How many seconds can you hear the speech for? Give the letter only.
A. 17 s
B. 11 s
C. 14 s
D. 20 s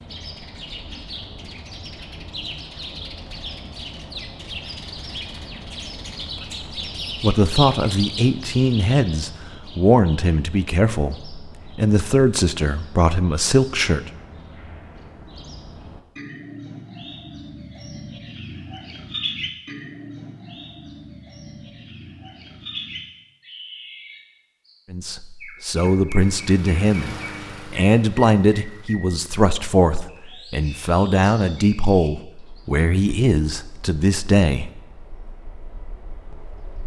A.